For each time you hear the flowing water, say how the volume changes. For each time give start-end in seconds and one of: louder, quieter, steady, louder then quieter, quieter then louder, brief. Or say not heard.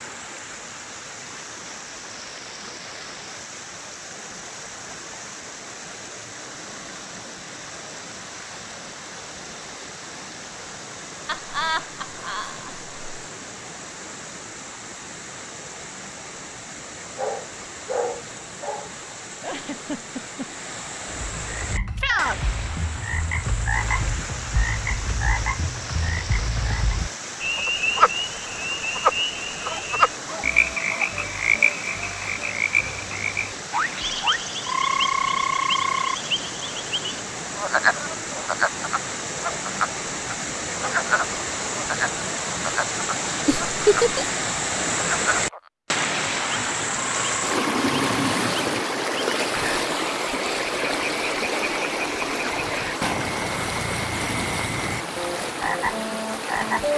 0.0-56.9 louder.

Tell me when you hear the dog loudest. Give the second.
18 s.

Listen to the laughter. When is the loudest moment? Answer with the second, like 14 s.
44 s.